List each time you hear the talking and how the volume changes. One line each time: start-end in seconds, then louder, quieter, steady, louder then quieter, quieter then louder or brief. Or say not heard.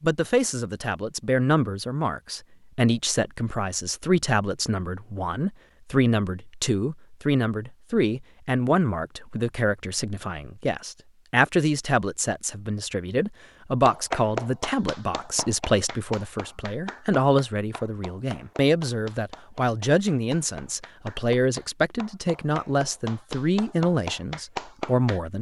0.0-25.3 steady.